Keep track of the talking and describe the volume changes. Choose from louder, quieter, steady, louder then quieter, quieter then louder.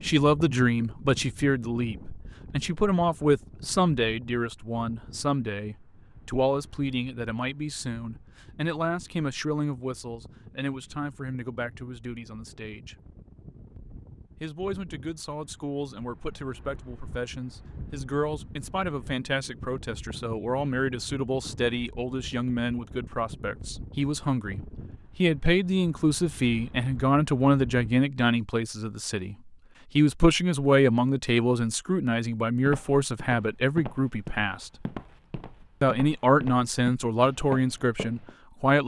quieter then louder.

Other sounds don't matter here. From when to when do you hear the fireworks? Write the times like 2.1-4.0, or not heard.
not heard.